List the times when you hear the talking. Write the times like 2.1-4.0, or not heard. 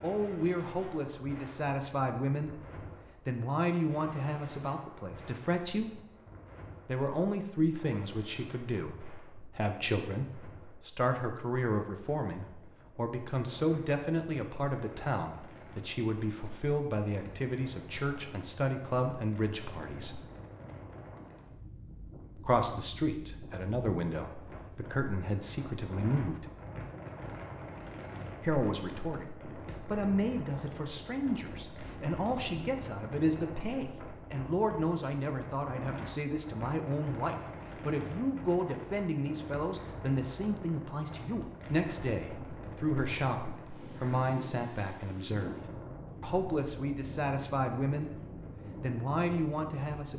0.0-6.0, 6.8-20.2, 22.4-26.4, 28.4-50.1.